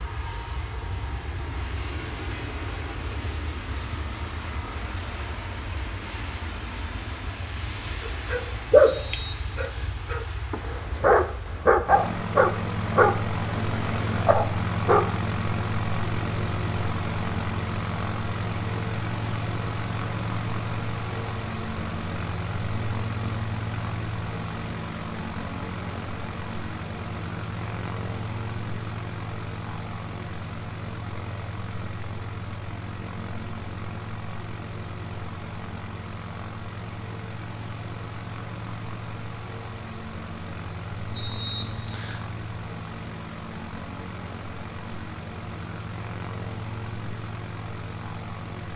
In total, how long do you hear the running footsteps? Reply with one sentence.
The running footsteps can't be heard in this clip.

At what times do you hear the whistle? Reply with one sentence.
The whistle can be heard from 8.8 to 10.0 s and from 41.1 to 42.2 s.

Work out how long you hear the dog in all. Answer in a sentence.
You can hear the dog for 7 seconds altogether.